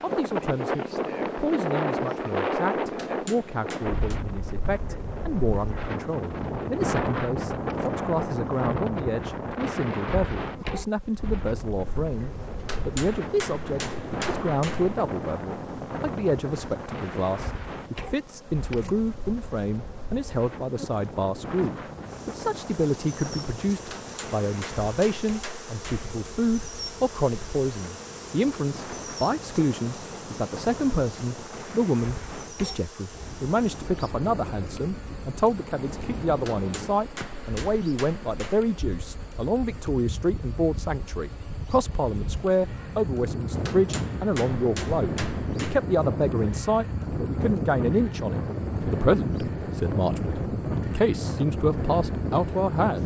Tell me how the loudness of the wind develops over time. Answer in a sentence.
The loudness of the wind goes down, then up.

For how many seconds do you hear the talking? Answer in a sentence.
The talking can be heard for 53 seconds in total.